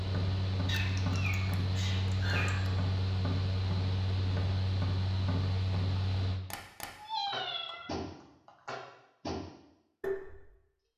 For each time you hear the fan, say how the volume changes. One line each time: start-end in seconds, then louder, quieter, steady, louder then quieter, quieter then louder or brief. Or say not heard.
0.0-6.4 steady.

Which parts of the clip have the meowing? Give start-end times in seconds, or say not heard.
0.7-2.7, 7.0-8.8.